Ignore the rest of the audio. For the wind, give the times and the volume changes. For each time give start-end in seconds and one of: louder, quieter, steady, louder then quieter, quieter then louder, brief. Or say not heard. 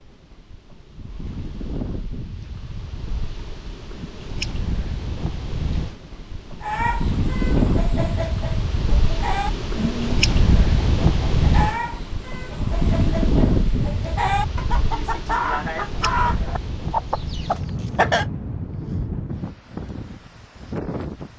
0.0-21.3 louder then quieter.